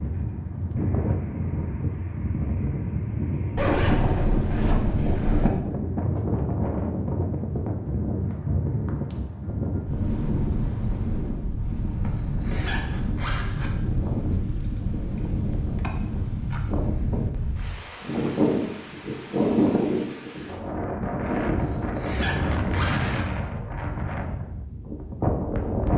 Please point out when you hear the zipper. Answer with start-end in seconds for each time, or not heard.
3.5-5.5, 12.0-13.8, 21.6-23.3.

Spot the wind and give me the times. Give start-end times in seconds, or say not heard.
0.0-25.9.